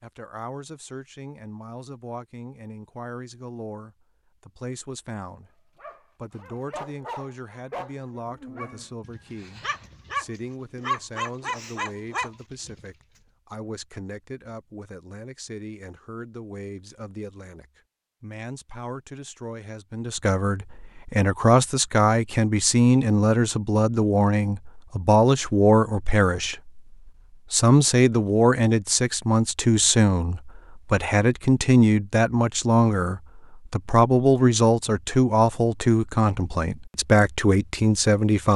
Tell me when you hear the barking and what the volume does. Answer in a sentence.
The barking can be heard from 5.8 to 12.8 s, getting louder.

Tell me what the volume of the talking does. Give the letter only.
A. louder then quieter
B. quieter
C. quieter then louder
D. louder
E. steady
D.